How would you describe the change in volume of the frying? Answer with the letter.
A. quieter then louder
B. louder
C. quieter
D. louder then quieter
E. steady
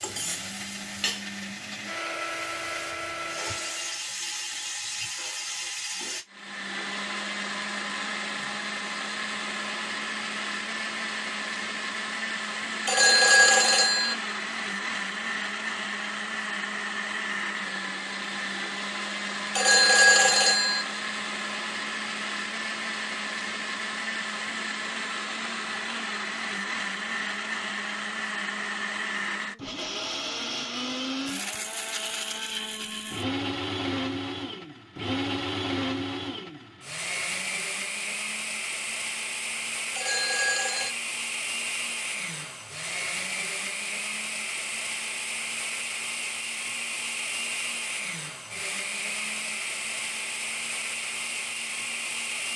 A.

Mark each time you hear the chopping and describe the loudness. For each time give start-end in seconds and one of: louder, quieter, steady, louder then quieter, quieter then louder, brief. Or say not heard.
not heard.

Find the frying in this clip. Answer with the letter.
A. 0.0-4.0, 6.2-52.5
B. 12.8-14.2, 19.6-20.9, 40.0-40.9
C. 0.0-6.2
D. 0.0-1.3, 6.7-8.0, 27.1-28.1
C.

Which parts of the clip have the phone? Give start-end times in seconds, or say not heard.
12.8-14.2, 19.6-20.9, 40.0-40.9.